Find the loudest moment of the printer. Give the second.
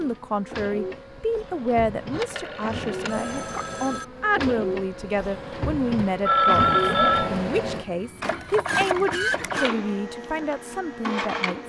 9 s.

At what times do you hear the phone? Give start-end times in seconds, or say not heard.
2.1-4.0, 6.2-7.4.